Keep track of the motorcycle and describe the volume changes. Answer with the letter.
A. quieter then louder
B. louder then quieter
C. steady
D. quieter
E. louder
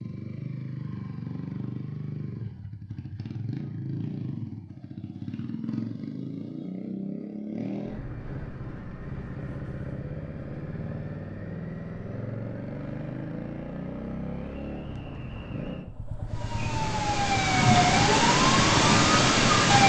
C.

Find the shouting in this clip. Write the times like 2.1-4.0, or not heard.
not heard.